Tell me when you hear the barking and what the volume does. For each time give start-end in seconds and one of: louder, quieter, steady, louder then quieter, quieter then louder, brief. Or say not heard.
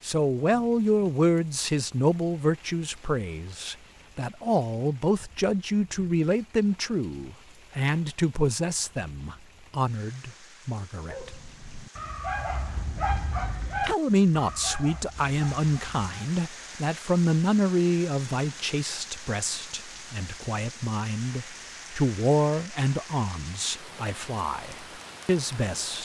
11.0-16.1 louder then quieter.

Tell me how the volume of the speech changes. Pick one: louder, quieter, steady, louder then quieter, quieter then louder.
steady.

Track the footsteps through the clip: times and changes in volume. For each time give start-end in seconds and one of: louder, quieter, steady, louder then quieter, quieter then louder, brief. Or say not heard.
not heard.